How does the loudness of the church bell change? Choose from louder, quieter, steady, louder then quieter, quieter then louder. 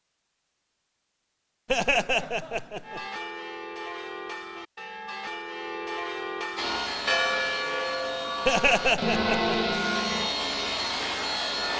louder.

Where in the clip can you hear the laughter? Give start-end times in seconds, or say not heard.
1.6-3.0, 8.4-9.6.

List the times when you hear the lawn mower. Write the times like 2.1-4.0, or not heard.
not heard.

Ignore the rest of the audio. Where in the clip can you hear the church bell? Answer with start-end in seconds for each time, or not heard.
2.8-10.3.